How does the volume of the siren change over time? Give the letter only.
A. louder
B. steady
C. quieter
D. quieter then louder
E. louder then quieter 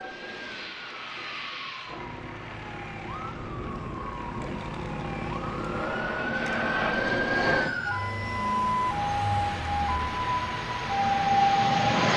A.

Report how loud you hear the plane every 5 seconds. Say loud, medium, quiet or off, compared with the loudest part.
medium, loud, loud.